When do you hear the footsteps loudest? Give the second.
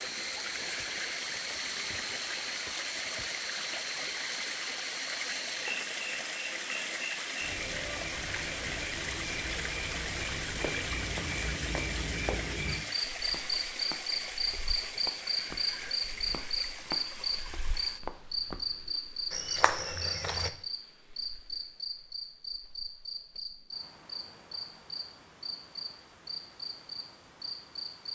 20 s.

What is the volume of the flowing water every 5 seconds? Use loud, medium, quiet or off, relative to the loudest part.
loud, loud, loud, medium, quiet, quiet.